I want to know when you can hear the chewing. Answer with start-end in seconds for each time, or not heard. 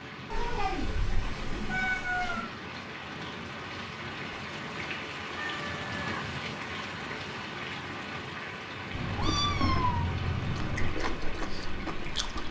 9.2-12.4.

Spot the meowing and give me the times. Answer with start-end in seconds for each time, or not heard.
0.3-2.5, 5.3-6.2, 8.9-10.9.